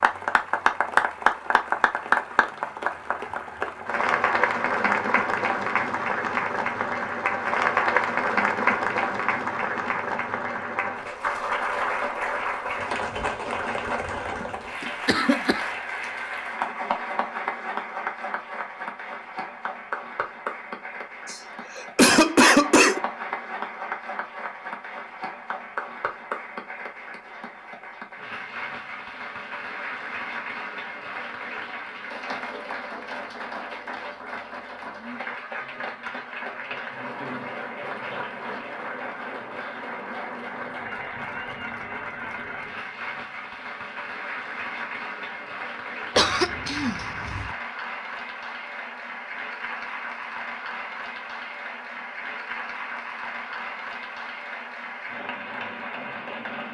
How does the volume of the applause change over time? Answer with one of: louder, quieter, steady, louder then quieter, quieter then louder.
quieter.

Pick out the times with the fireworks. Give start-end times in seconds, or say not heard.
not heard.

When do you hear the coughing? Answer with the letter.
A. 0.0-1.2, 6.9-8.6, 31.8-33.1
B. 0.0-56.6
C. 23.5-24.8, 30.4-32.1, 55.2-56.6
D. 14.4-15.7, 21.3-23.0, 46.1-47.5
D.